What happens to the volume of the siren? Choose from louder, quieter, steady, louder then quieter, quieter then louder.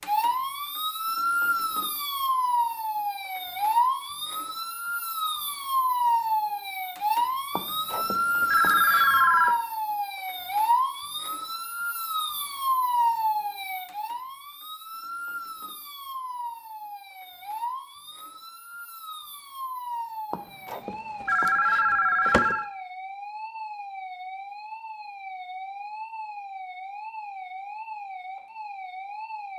quieter.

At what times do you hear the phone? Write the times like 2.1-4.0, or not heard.
7.5-9.6, 20.3-22.6.